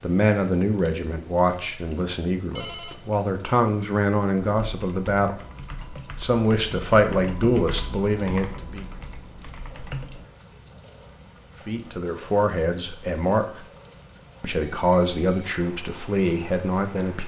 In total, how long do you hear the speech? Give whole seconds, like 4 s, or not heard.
13 s.